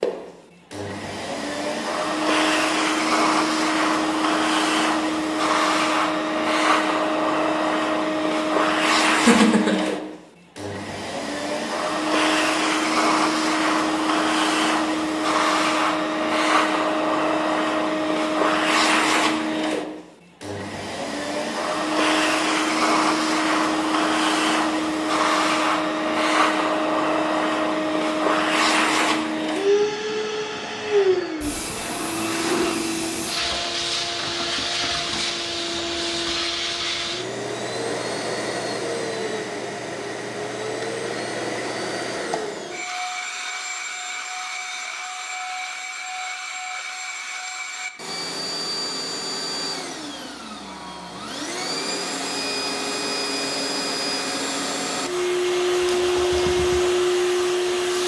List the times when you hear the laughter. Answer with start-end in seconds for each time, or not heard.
9.1-9.8.